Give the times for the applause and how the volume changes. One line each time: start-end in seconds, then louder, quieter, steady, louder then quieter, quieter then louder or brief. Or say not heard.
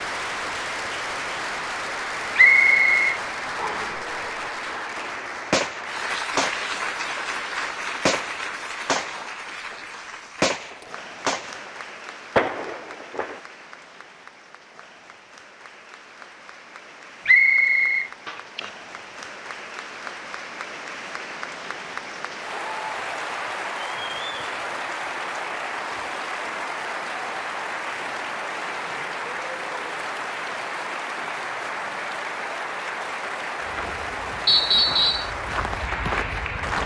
0.0-36.8 quieter then louder.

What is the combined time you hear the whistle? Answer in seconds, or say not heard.
3 s.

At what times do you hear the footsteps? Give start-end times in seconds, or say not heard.
33.6-36.8.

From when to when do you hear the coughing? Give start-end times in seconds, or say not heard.
18.2-18.8.